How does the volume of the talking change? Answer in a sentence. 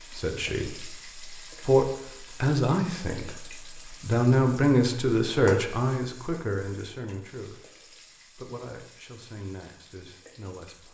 The loudness of the talking goes down.